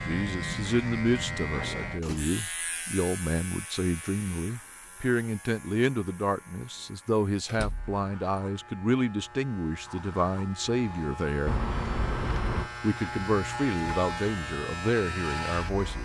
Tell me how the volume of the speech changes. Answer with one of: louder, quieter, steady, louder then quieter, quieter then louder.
steady.